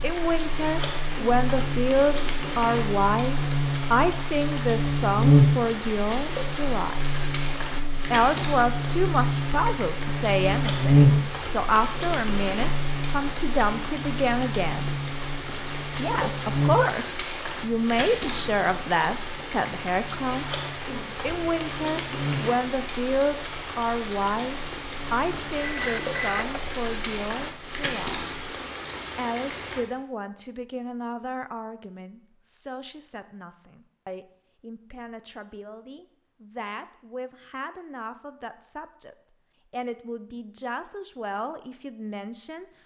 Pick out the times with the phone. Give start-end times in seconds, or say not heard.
25.6-26.8.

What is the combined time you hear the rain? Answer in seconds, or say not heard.
30 s.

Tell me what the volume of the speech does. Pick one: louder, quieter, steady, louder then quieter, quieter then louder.
quieter.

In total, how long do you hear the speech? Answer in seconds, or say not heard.
39 s.